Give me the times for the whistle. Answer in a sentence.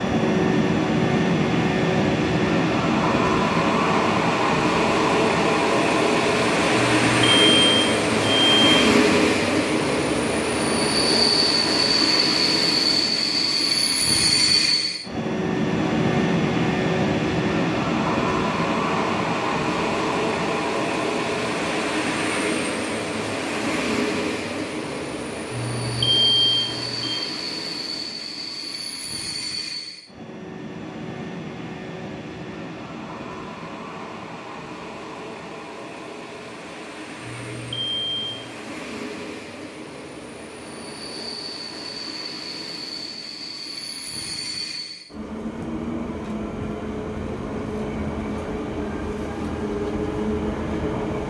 You can't hear the whistle here.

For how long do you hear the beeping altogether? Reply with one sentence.
You can hear the beeping for 5 seconds altogether.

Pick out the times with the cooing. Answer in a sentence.
The cooing can't be heard in this clip.